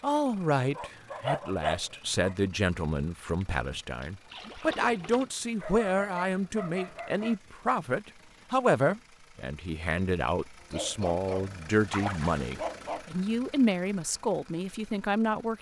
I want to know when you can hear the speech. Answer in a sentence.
The speech can be heard from 0.0 to 15.5 s.